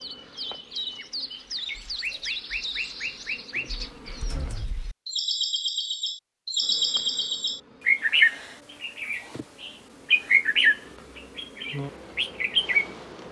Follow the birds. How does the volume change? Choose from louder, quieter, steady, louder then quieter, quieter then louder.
louder.